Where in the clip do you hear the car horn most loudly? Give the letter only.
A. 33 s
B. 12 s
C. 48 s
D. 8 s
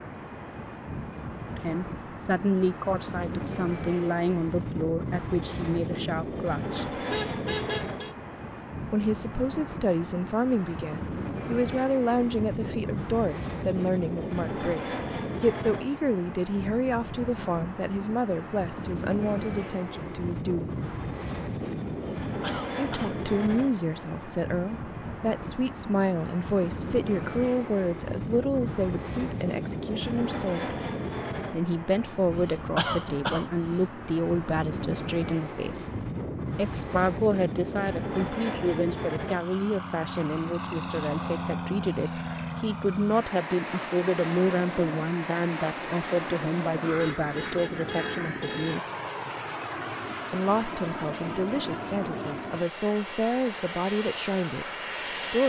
D.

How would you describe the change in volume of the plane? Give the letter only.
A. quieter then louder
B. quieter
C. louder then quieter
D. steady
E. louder
D.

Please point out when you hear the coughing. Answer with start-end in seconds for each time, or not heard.
22.2-23.1, 32.3-33.8.